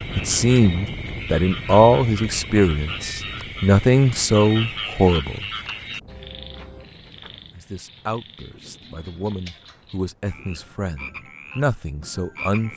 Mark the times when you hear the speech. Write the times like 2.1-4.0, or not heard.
0.1-5.5, 7.5-12.7.